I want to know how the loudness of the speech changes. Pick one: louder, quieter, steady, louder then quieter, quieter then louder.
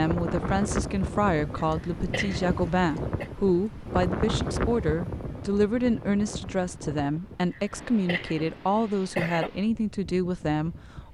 steady.